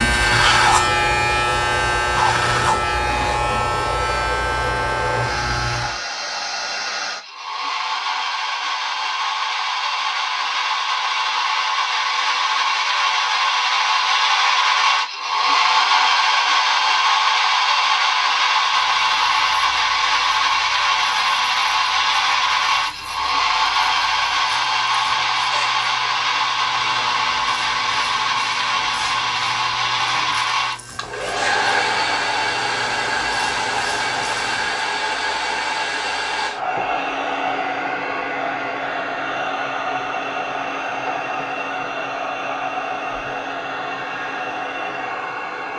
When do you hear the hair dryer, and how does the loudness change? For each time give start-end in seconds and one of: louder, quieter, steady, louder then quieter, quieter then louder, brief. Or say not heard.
0.1-45.7 louder then quieter.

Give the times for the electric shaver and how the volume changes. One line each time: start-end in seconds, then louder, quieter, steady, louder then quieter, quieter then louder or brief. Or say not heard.
0.0-6.0 quieter
18.6-34.9 louder.